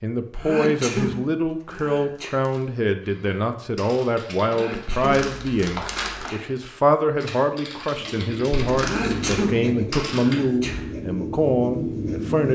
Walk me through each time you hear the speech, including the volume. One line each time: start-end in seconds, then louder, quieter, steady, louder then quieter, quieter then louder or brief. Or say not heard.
0.0-12.5 steady.